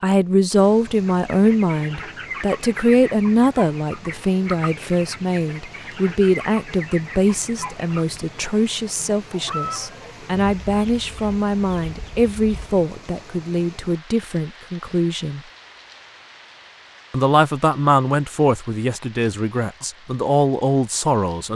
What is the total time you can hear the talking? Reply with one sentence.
The talking can be heard for 20 seconds in total.